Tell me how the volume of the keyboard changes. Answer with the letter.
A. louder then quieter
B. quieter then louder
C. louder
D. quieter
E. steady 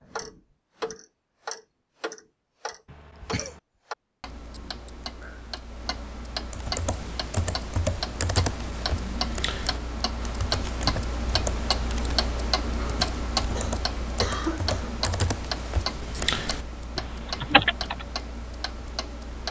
B.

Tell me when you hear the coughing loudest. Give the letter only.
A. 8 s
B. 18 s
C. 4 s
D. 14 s
D.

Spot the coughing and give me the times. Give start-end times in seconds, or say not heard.
2.9-3.6, 13.4-14.9.